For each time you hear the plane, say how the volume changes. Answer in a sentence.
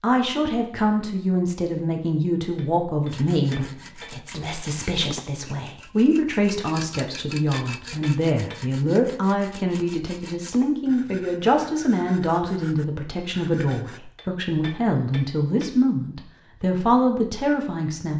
You can't hear the plane here.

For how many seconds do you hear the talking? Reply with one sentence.
The talking can be heard for 18 seconds in total.